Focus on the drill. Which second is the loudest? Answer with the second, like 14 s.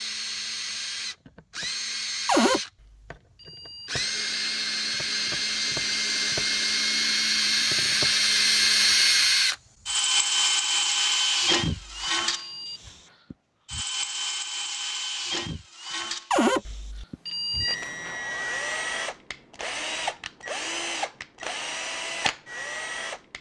9 s.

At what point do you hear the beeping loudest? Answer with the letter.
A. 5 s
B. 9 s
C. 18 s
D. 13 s
C.